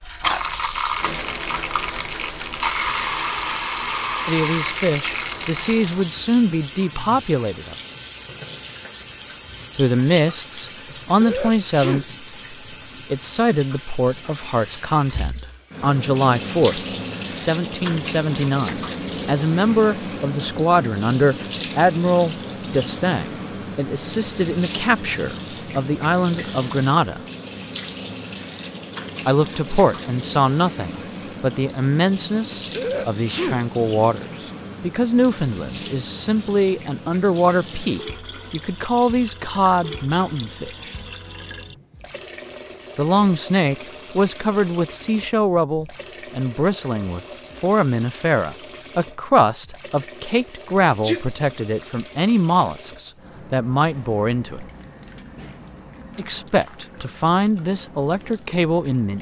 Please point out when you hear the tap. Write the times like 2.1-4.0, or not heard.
0.0-59.1.